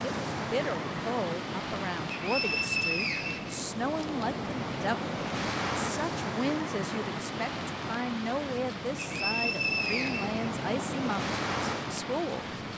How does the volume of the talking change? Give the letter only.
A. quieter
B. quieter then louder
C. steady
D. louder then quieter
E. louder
C.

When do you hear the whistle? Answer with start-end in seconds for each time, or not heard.
2.1-4.0, 8.9-10.4.